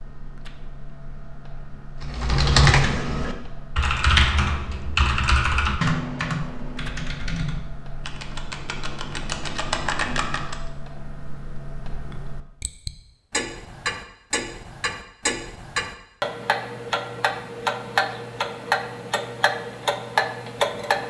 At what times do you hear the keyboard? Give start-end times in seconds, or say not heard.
2.0-10.6.